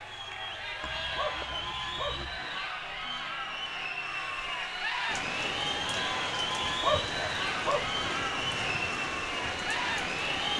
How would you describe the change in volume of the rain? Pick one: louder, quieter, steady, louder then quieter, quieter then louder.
steady.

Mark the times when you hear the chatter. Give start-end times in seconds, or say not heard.
0.0-10.5.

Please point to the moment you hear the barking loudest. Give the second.
7 s.